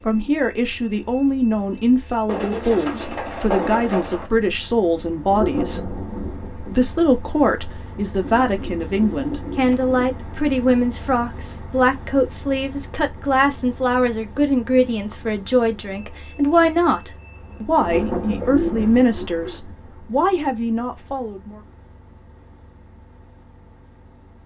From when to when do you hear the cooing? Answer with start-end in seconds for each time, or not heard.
2.2-4.3, 8.2-10.1, 17.9-19.6.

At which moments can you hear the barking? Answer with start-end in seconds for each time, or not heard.
not heard.